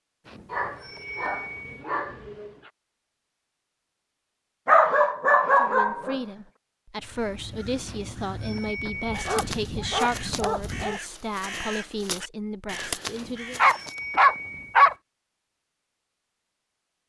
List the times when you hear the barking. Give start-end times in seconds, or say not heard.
0.5-2.7, 4.7-6.2, 8.8-11.0, 13.6-14.9.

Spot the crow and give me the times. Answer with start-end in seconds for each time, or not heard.
7.0-14.0.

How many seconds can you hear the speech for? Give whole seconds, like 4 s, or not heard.
8 s.